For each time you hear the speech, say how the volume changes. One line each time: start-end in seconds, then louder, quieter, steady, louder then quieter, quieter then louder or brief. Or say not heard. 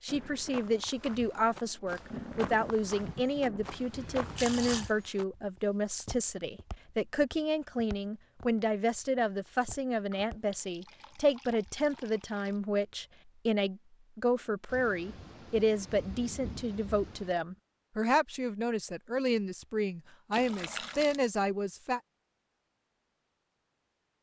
0.0-22.0 steady.